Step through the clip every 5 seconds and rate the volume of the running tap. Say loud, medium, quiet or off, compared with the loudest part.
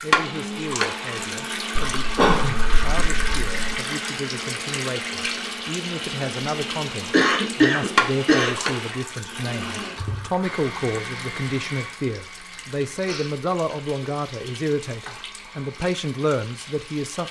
loud, loud, quiet, quiet.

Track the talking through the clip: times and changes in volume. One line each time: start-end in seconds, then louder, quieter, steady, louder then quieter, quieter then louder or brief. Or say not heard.
0.0-17.2 louder.